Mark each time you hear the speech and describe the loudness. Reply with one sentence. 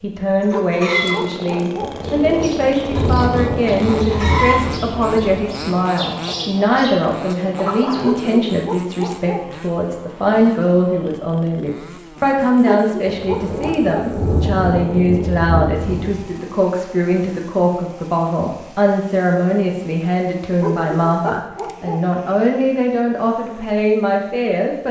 You can hear the speech from 0.0 to 24.8 s, at a steady volume.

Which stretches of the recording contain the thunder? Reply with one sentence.
You can hear the thunder from 1.8 to 5.7 s and from 13.1 to 16.3 s.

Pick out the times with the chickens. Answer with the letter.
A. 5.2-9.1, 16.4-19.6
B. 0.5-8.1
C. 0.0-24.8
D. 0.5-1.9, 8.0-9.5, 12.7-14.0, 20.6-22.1
B.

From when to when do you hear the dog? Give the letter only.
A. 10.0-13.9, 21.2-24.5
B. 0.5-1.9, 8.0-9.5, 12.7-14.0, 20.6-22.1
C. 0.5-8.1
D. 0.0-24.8
B.